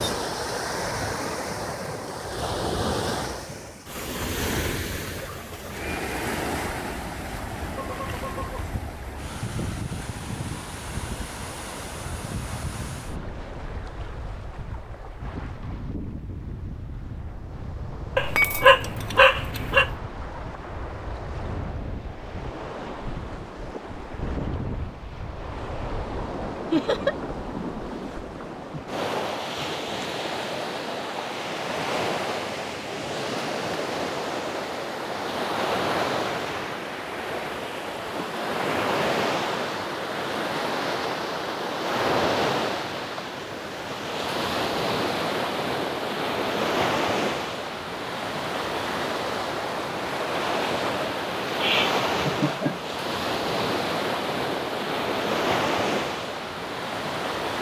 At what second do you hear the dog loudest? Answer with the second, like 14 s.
19 s.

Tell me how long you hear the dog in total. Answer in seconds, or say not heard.
2 s.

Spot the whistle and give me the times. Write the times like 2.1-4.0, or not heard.
not heard.